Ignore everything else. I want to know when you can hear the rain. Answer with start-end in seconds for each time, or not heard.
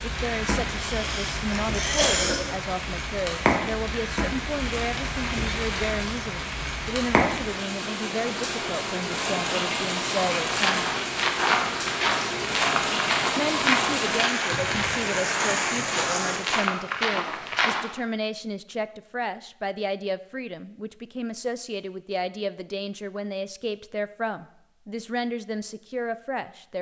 0.0-16.6.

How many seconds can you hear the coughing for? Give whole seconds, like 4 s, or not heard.
2 s.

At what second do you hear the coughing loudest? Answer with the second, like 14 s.
2 s.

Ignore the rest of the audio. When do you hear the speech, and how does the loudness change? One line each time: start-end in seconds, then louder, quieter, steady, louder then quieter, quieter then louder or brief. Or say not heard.
0.0-10.8 steady
13.3-26.7 steady.